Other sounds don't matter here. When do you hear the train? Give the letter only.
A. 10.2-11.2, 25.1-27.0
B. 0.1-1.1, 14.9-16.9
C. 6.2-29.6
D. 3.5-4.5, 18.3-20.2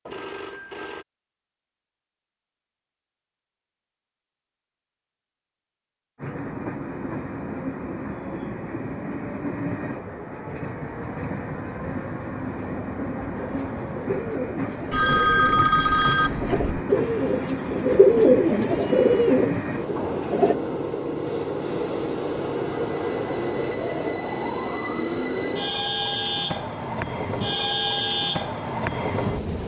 C.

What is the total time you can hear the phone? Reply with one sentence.
The phone can be heard for 3 seconds in total.